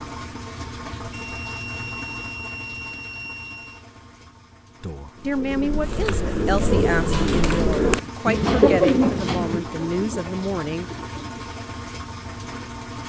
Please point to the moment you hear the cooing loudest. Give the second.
9 s.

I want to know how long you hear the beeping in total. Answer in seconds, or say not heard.
3 s.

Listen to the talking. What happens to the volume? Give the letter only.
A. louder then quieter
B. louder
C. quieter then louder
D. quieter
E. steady
E.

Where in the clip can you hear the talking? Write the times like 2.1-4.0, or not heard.
4.8-10.9.